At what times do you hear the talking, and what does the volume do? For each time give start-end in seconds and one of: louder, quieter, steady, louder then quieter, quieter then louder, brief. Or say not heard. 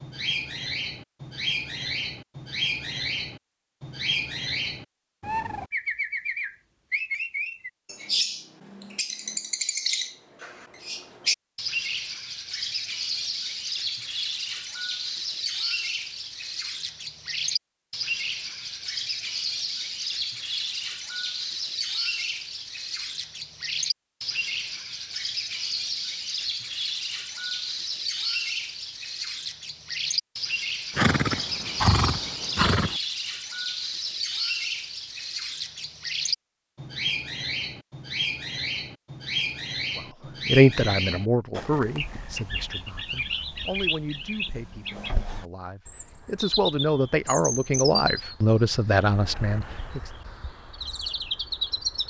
40.0-50.1 quieter then louder.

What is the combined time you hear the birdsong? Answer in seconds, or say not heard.
52 s.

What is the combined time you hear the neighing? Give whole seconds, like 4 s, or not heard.
2 s.